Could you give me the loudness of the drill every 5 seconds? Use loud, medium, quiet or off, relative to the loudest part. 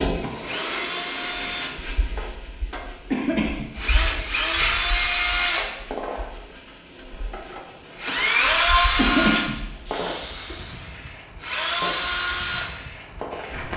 medium, loud, medium.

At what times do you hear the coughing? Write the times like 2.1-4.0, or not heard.
3.1-5.0, 8.9-9.6.